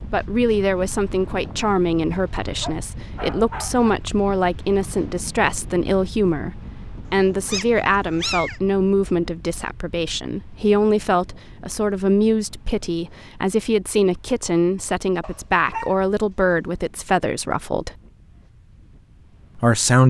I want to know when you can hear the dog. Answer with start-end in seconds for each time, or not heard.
2.6-3.9, 7.0-8.6, 15.2-16.6.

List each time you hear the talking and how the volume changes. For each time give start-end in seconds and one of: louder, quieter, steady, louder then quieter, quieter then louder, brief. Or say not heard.
0.1-17.9 steady
19.6-20.0 brief.